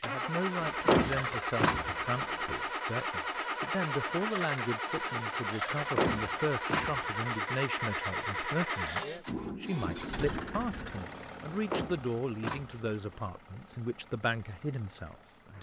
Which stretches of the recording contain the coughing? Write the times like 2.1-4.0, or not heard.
not heard.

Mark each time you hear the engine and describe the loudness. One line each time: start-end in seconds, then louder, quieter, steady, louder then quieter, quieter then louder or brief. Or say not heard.
0.0-15.5 quieter.